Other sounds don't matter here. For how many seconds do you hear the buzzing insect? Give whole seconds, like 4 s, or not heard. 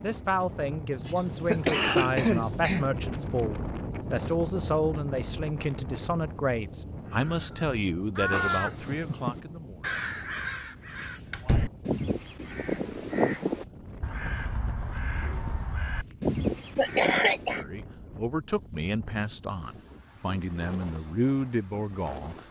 not heard.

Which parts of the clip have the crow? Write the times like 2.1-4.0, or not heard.
7.0-17.6.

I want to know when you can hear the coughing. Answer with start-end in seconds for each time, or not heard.
1.1-2.9, 16.8-17.6.